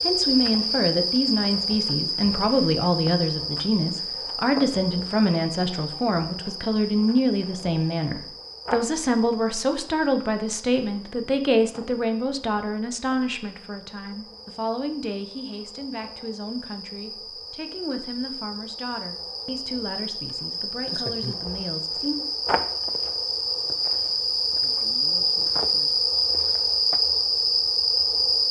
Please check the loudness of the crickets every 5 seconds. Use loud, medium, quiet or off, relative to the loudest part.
medium, quiet, quiet, quiet, medium, loud.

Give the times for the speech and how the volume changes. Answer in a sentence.
The speech can be heard from 0.0 to 22.2 s, getting quieter.